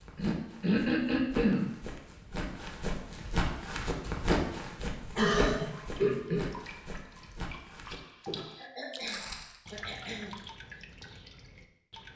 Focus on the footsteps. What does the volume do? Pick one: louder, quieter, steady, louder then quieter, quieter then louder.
louder then quieter.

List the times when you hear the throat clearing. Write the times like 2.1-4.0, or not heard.
0.1-1.7, 5.2-6.5, 8.6-10.3.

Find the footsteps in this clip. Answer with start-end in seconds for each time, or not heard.
0.0-9.6.